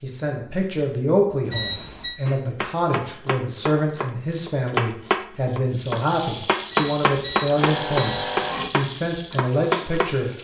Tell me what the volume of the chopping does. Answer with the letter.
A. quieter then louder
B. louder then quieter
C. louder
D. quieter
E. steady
C.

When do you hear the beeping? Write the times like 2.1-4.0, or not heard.
1.5-2.2, 6.7-8.7.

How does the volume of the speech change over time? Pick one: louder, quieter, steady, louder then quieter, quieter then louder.
steady.